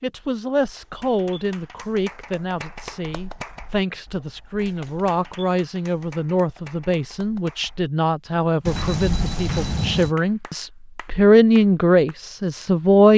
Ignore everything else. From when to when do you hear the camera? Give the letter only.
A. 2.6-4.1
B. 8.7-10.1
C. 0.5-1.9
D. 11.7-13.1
B.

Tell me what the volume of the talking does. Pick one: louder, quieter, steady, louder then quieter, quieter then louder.
louder.